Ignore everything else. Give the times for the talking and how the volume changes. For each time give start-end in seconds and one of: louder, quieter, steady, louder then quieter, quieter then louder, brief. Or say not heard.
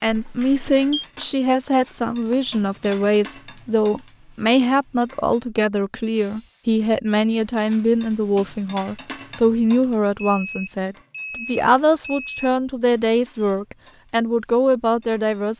0.0-15.5 steady.